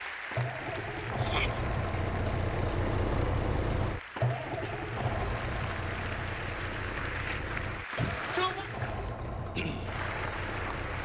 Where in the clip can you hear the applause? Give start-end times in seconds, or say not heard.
0.0-11.0.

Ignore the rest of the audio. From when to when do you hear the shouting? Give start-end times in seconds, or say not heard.
1.1-1.6, 8.0-8.7.